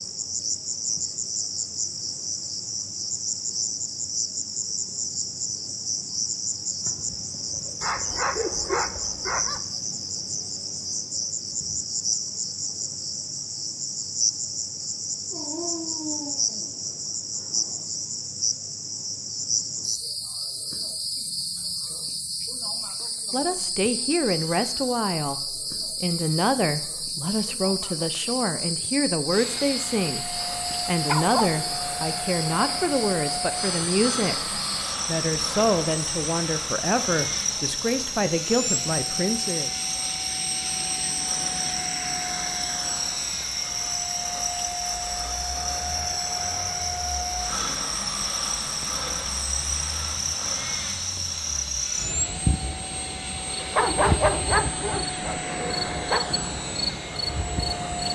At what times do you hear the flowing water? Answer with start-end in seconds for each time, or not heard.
not heard.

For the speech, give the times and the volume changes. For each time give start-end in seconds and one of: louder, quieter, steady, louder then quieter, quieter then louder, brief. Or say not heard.
23.3-39.7 steady.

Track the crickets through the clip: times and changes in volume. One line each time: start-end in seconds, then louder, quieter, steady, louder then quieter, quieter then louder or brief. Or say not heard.
0.0-58.0 steady.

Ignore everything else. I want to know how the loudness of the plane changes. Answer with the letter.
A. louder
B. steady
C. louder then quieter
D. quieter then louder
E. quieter
B.